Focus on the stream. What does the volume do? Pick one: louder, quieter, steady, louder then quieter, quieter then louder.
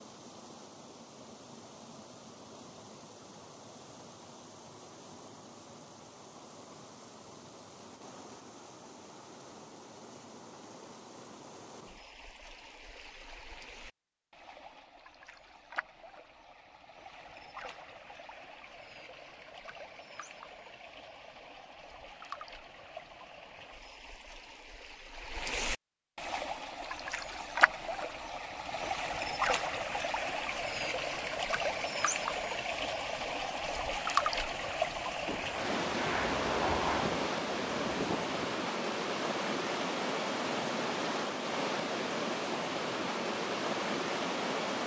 louder.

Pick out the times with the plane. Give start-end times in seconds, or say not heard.
35.2-38.6.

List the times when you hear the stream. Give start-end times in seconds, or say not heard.
0.0-44.8.